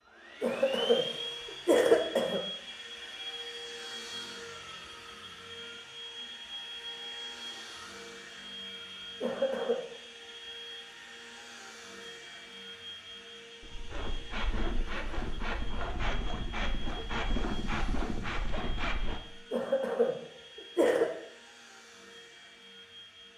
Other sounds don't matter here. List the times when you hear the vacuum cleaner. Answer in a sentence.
You can hear the vacuum cleaner from 0.1 to 23.3 s.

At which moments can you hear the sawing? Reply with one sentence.
The sawing can be heard from 13.6 to 19.2 s.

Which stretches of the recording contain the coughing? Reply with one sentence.
The coughing can be heard from 0.4 to 2.4 s, from 9.2 to 9.8 s and from 19.5 to 21.1 s.